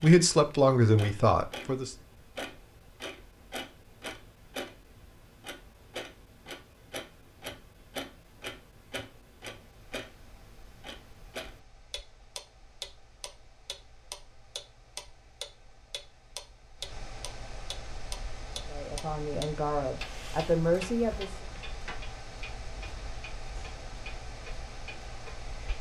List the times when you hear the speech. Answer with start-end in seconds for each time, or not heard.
0.0-1.9, 18.6-21.4.